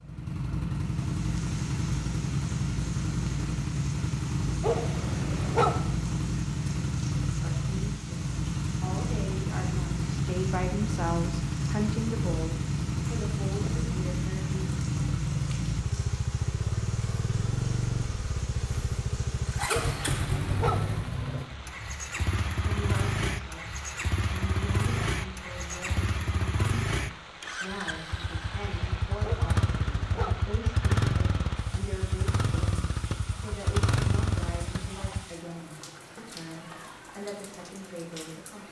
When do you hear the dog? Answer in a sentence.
The dog can be heard from 4.6 to 5.8 s, from 19.6 to 20.9 s and from 29.2 to 30.4 s.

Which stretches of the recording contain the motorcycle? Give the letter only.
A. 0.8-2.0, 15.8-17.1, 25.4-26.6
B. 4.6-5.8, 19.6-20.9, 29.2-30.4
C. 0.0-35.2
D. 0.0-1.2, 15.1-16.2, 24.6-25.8
C.